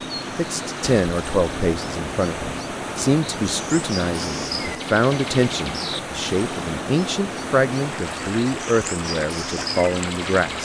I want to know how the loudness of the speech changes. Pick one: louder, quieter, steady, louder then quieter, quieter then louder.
steady.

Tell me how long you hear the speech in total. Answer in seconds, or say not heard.
10 s.